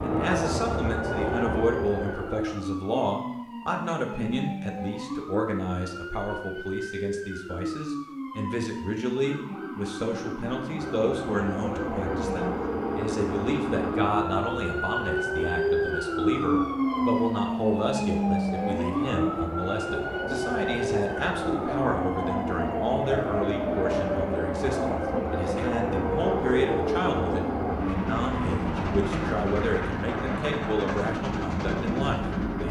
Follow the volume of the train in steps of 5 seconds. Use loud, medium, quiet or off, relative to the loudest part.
loud, off, medium, medium, loud, loud, loud.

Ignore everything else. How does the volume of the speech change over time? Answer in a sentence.
The loudness of the speech stays about the same.